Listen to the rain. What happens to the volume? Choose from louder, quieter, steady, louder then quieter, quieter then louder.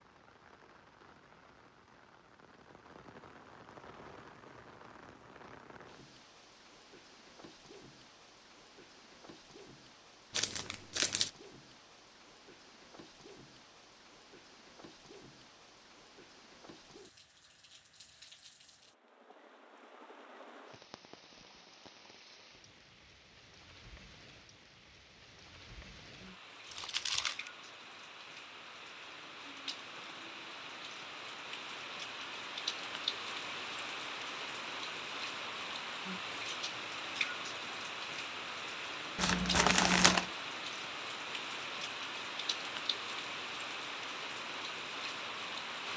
louder.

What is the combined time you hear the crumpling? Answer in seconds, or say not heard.
3 s.